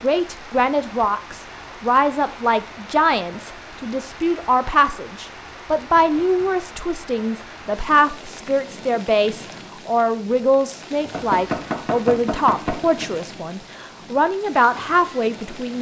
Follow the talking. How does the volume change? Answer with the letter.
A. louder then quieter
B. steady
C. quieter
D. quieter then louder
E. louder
B.